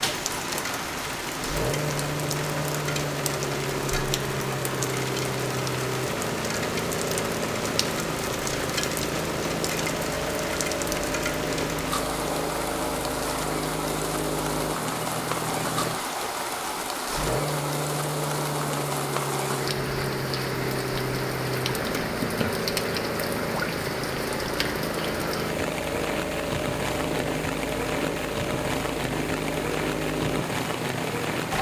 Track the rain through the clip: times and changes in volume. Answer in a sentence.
The rain can be heard from 0.0 to 31.5 s, at a steady volume.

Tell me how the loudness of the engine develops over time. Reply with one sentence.
The loudness of the engine stays about the same.